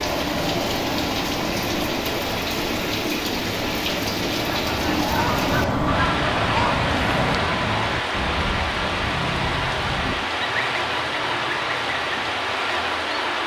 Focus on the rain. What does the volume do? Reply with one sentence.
The volume of the rain stays about the same.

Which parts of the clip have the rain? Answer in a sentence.
You can hear the rain from 0.0 to 13.4 s.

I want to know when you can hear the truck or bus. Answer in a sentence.
You can hear the truck or bus from 0.0 to 7.4 s.